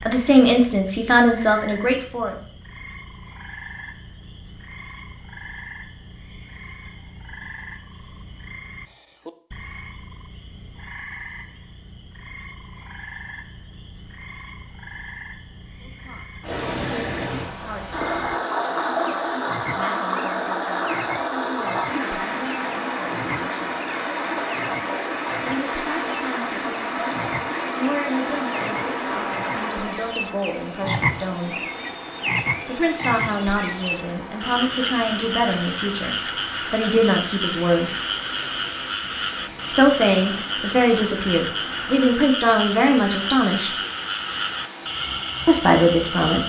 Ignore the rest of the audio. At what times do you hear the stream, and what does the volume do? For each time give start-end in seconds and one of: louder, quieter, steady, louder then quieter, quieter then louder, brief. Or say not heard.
16.4-46.4 quieter.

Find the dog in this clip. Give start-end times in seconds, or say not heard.
not heard.